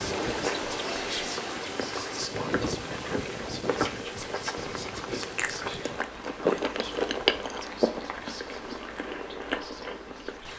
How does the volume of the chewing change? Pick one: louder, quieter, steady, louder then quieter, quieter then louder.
louder then quieter.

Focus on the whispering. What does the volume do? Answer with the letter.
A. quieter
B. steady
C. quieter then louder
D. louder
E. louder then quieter
A.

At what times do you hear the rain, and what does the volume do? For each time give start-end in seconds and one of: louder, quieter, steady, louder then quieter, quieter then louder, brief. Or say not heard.
0.0-10.5 quieter.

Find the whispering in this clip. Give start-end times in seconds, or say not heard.
0.0-10.5.